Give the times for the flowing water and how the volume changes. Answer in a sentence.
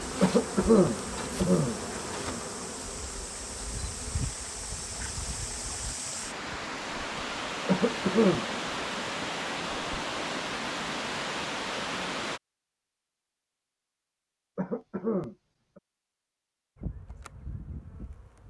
The flowing water can be heard from 0.0 to 12.4 s, getting louder.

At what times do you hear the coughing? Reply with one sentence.
The coughing can be heard from 0.2 to 1.8 s, from 7.7 to 8.4 s and from 14.6 to 15.8 s.